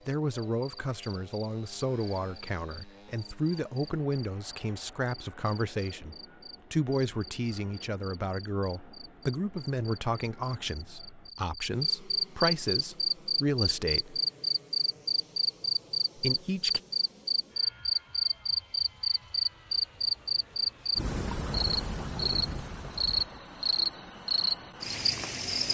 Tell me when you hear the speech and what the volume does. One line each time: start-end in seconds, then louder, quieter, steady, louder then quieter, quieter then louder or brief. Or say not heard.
0.1-14.2 steady
16.1-16.8 brief.